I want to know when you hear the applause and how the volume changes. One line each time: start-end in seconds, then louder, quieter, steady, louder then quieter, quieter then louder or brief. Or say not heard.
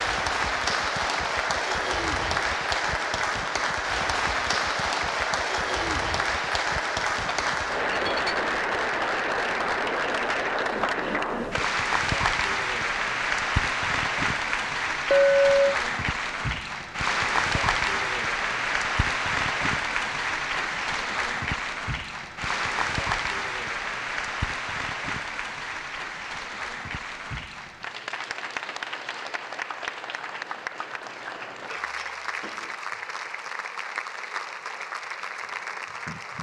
0.0-36.3 quieter.